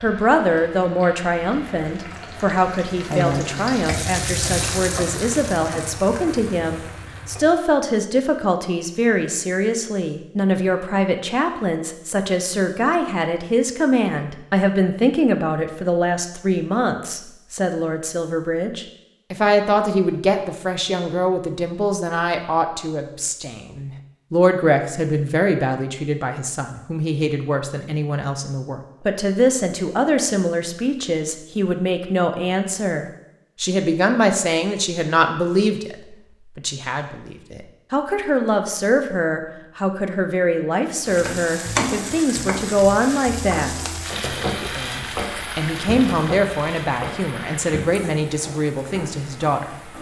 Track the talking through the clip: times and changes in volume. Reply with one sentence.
The talking can be heard from 0.0 to 49.9 s, at a steady volume.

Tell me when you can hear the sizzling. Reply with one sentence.
You can hear the sizzling from 0.0 to 7.5 s and from 41.0 to 49.9 s.